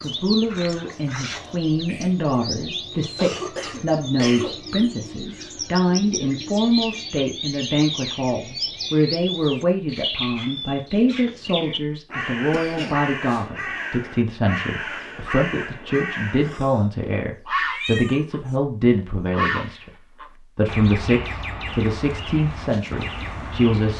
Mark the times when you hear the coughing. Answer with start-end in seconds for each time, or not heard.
3.1-4.5, 12.5-13.4, 16.4-16.9.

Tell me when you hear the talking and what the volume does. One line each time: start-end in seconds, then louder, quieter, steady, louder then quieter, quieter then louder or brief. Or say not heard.
0.0-23.9 steady.